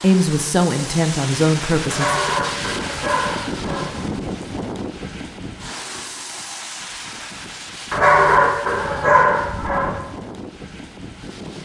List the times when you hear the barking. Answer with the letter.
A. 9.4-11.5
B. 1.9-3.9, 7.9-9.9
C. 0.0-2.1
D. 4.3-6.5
B.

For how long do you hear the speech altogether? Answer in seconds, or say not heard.
2 s.